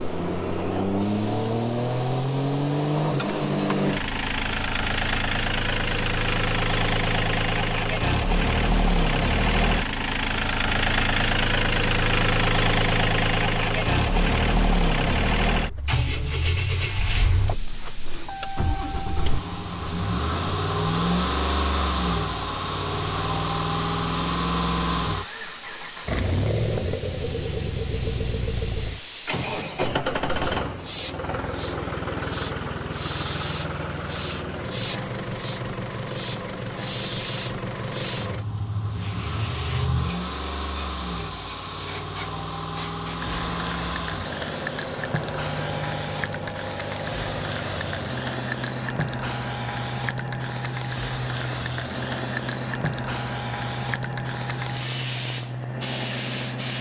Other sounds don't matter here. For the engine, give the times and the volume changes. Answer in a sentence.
The engine can be heard from 0.0 to 56.7 s, getting quieter.